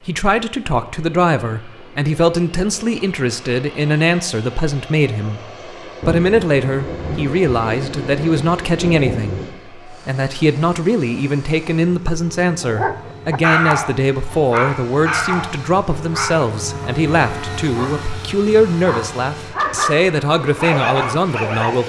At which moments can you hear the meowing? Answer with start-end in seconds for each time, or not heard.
not heard.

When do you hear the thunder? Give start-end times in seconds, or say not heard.
6.0-9.6.